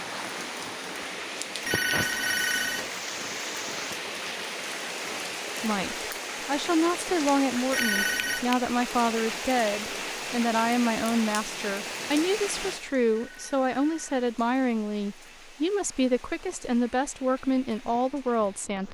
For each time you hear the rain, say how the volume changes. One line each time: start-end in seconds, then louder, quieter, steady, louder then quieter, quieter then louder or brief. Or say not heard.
0.0-18.9 quieter.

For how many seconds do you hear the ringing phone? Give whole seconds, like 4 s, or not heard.
3 s.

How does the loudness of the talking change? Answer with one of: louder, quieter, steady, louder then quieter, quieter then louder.
steady.